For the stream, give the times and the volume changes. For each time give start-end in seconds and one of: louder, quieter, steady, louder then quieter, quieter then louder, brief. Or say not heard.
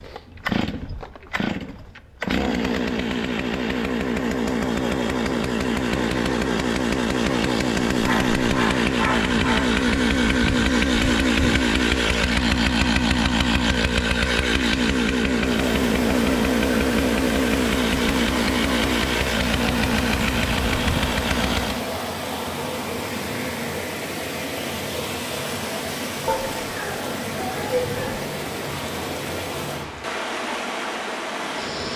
15.4-31.9 steady.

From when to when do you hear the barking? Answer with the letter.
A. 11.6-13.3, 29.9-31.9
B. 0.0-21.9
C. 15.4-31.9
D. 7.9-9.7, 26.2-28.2
D.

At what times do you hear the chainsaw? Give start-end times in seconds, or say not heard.
0.0-21.9.